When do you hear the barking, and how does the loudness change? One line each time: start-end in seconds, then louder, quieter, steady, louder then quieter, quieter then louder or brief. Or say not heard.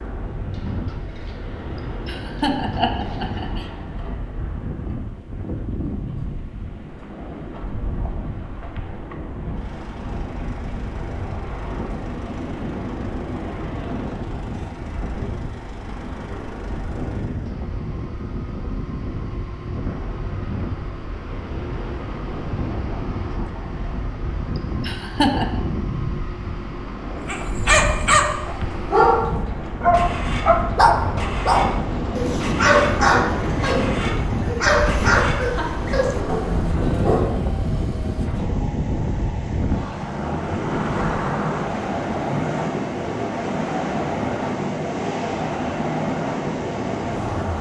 27.2-37.5 quieter.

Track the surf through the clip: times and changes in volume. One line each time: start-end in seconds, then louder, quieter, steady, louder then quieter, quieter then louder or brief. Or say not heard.
0.0-47.5 louder.